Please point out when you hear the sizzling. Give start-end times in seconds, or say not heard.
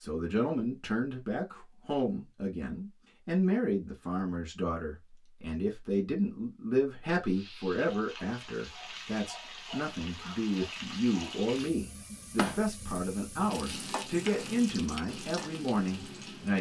7.2-16.5.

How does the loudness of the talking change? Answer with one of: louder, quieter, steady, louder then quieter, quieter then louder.
steady.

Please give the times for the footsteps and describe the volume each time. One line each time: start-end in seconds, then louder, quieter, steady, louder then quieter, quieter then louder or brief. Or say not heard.
not heard.